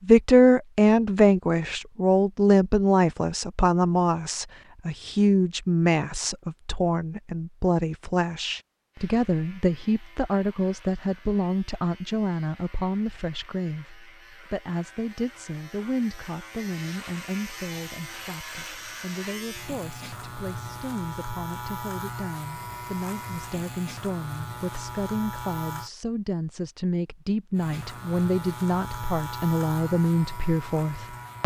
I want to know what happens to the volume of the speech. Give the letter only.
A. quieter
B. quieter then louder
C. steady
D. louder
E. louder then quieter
B.